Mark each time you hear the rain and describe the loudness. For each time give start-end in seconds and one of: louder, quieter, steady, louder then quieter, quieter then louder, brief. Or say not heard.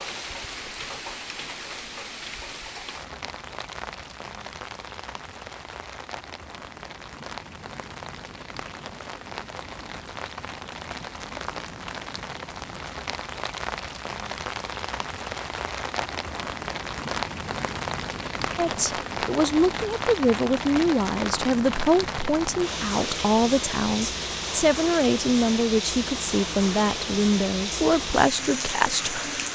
0.0-29.5 louder.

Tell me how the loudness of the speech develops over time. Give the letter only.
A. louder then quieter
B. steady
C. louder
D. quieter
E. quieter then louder
B.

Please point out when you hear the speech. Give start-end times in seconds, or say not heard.
18.6-29.5.